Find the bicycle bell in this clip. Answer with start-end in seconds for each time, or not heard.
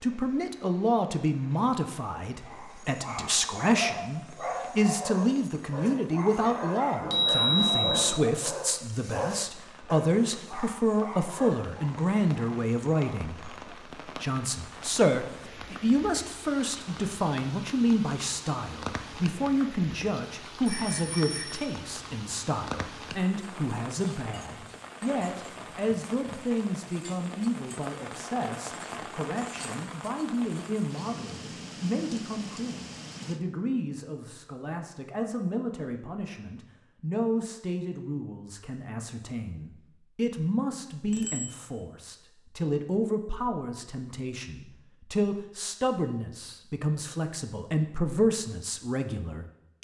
7.0-8.2, 20.6-21.6, 41.1-41.6.